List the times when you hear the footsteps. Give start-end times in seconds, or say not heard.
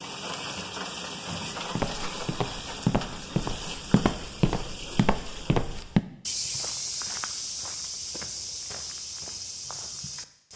1.7-10.5.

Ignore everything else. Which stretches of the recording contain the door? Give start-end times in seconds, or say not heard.
0.6-1.5.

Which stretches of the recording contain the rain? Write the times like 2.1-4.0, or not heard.
0.0-6.0.